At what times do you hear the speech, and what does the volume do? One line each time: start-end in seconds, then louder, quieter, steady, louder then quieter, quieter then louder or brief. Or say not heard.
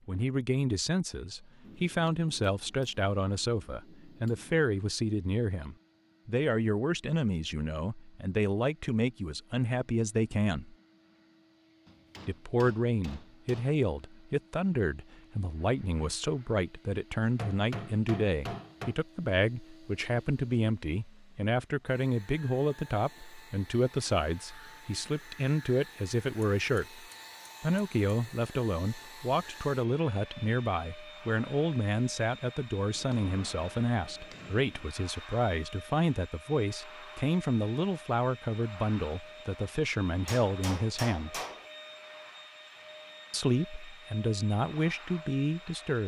0.1-10.8 steady
12.2-41.4 steady
43.3-46.0 brief.